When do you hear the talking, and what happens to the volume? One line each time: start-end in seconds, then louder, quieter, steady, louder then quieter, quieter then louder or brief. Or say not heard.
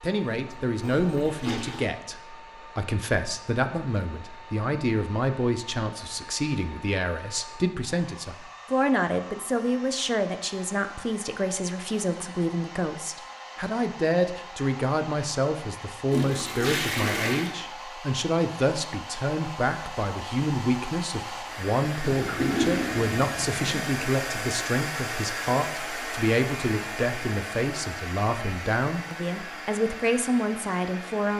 0.0-31.3 steady.